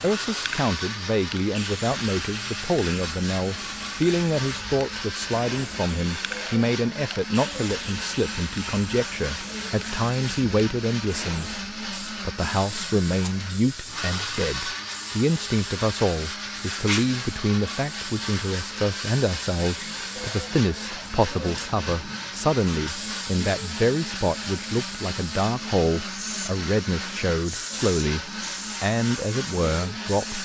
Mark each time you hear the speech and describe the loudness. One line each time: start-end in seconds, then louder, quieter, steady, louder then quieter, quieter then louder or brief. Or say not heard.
0.0-30.4 steady.